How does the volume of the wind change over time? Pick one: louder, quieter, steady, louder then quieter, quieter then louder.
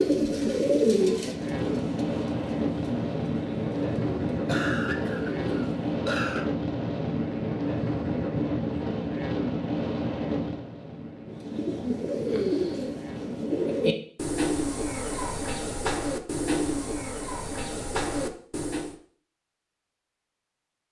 quieter.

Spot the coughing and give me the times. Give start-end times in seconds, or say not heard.
4.5-6.5.